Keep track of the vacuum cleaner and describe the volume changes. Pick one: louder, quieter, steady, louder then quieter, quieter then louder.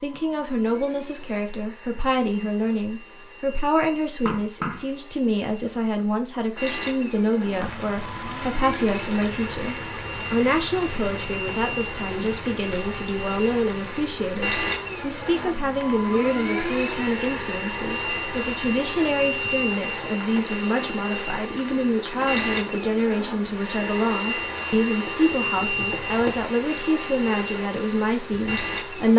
louder.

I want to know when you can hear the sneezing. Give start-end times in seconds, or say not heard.
not heard.